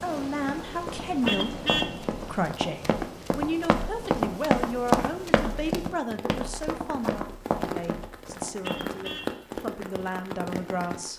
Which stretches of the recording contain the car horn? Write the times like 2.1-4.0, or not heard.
1.2-1.9, 8.6-9.3.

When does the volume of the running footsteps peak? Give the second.
5 s.